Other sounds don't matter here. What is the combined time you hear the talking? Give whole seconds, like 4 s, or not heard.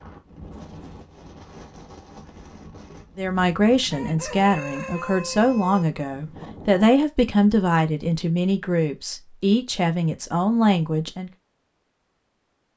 8 s.